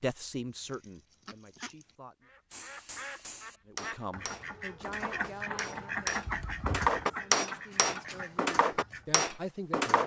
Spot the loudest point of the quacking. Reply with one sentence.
The volume of the quacking peaks at 6 seconds.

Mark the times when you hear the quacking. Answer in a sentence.
You can hear the quacking from 0.5 to 9.1 s.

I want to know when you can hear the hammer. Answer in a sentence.
You can hear the hammer from 2.5 to 10.0 s.